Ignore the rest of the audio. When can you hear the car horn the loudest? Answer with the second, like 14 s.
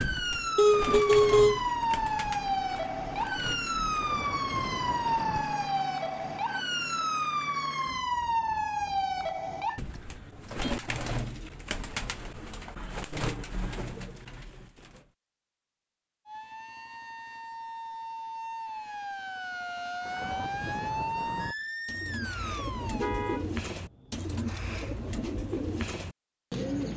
1 s.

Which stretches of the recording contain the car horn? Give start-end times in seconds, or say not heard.
0.6-1.6, 10.1-10.7, 22.9-23.4.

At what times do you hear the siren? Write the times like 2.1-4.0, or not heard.
0.0-9.8, 16.2-23.1.